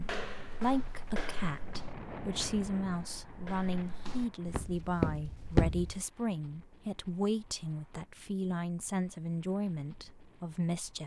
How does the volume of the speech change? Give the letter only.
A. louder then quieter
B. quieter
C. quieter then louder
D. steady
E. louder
D.